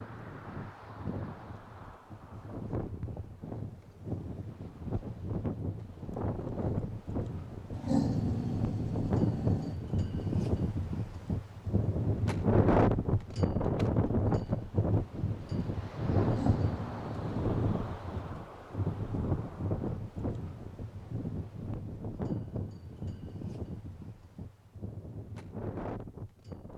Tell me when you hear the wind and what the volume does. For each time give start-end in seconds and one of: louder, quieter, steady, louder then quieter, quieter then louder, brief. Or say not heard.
0.0-26.7 louder then quieter.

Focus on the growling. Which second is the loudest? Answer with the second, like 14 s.
8 s.